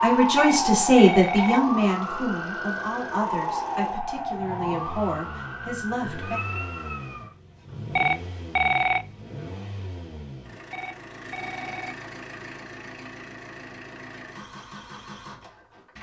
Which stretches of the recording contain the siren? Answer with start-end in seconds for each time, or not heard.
0.0-7.3.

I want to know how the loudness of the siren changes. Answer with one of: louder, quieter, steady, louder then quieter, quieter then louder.
quieter.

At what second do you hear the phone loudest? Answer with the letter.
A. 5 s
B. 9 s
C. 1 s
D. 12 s
B.